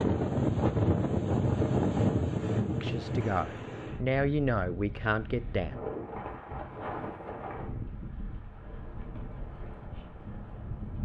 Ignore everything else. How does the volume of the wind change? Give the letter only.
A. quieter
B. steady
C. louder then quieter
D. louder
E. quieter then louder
A.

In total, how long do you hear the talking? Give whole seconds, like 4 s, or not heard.
3 s.